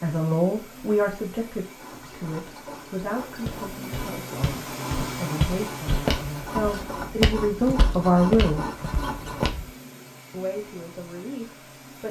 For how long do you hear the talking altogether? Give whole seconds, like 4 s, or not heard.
10 s.